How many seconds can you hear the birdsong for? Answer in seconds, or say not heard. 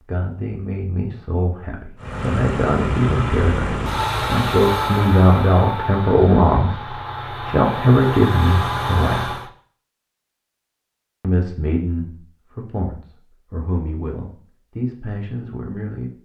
not heard.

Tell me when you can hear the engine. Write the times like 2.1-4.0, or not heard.
2.0-9.5.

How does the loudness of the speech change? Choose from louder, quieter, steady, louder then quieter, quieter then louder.
louder then quieter.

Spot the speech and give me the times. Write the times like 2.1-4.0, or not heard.
0.1-9.4, 11.2-16.1.